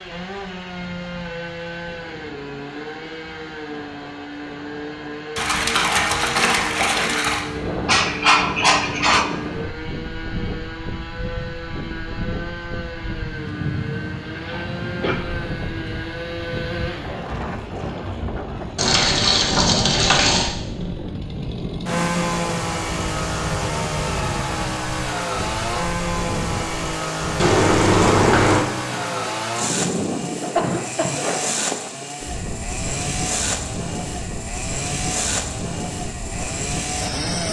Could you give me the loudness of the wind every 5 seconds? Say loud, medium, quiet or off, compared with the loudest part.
quiet, loud, loud, loud, loud, loud, loud, loud.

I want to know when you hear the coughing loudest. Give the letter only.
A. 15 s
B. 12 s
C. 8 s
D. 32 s
C.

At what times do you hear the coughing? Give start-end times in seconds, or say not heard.
7.8-9.3, 14.3-15.2, 30.6-31.2.